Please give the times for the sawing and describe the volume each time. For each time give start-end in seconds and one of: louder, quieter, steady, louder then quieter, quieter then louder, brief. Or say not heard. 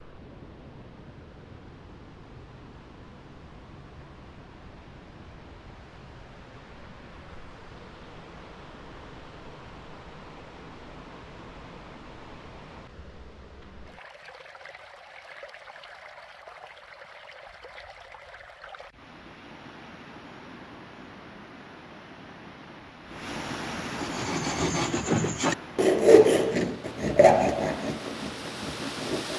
23.9-29.3 louder then quieter.